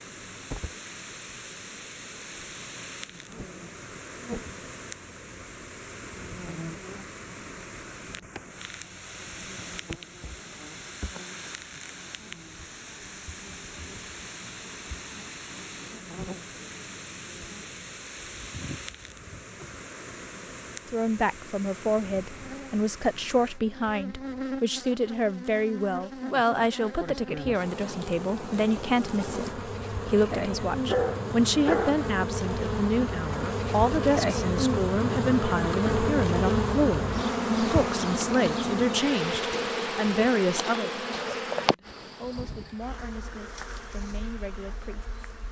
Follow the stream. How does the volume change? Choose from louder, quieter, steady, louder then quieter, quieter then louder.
steady.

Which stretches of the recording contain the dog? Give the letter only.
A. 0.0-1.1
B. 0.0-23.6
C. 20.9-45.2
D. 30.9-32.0
D.